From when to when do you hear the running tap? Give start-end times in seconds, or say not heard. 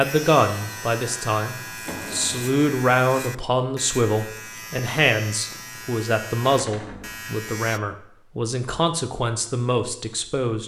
not heard.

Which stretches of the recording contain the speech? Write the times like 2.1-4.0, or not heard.
0.0-10.6.